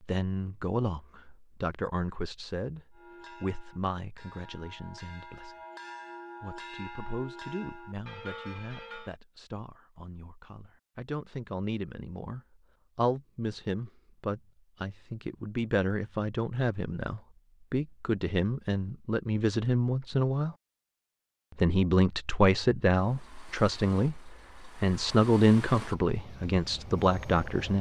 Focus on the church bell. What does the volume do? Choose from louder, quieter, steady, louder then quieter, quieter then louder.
louder.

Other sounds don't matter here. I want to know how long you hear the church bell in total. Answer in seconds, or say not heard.
6 s.